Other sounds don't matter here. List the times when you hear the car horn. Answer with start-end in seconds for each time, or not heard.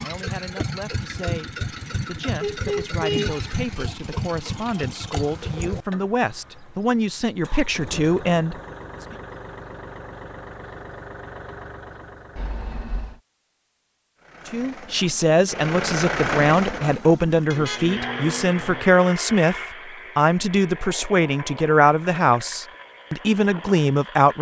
2.4-3.4, 12.3-13.2, 17.5-18.9.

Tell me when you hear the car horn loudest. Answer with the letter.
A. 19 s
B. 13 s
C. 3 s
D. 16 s
C.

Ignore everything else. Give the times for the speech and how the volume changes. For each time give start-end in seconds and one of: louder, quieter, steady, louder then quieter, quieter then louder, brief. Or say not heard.
0.0-8.6 louder
14.4-24.3 steady.